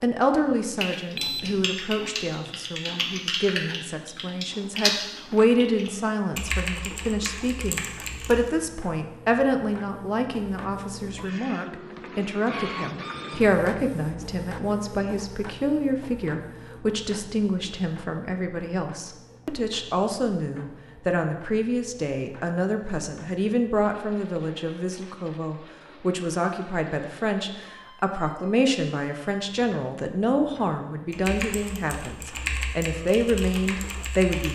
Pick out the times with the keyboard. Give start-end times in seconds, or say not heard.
0.8-8.6, 31.1-34.5.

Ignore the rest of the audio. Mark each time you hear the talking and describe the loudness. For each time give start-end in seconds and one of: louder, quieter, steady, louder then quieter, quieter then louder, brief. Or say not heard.
0.0-34.5 steady.